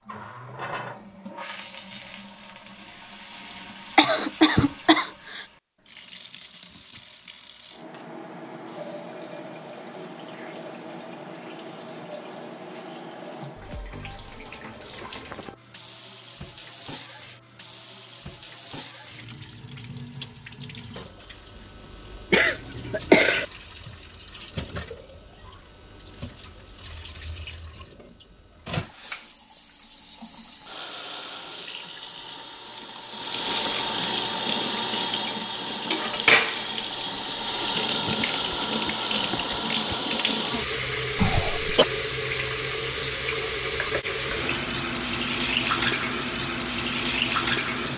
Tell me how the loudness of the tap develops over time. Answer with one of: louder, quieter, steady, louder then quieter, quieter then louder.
louder.